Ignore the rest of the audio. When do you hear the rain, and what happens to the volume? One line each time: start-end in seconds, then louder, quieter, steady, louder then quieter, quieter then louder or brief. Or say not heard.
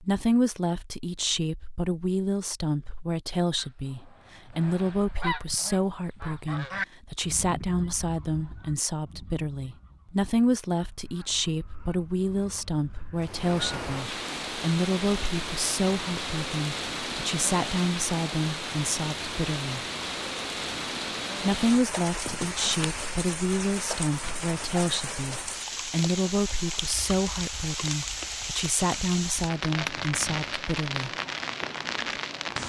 13.2-32.6 steady.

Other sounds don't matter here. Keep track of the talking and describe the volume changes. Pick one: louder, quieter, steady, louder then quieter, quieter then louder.
steady.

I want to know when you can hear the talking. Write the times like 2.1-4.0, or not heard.
0.0-19.8, 21.4-31.1.